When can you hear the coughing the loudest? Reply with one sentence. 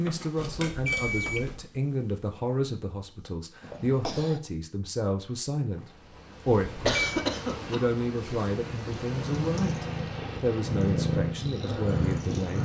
The volume of the coughing peaks at 7 seconds.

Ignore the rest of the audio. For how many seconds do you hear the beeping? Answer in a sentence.
The beeping can be heard for 2 seconds in total.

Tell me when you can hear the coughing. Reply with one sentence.
You can hear the coughing from 3.6 to 4.4 s and from 6.8 to 8.6 s.